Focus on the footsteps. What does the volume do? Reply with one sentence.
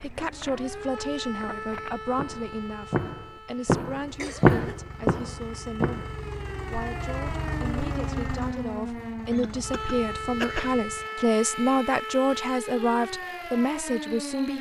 The volume of the footsteps goes up, then down.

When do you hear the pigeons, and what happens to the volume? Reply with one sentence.
You can't hear the pigeons here.